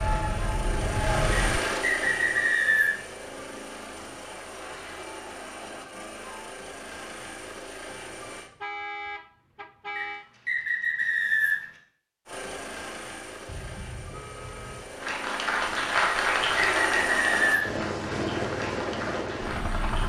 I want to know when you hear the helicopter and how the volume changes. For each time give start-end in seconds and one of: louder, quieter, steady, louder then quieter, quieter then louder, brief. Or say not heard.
0.0-8.5 quieter
12.2-20.0 louder.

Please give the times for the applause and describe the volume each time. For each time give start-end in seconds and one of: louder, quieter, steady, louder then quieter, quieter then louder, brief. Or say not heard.
0.0-1.8 brief
15.0-20.0 quieter.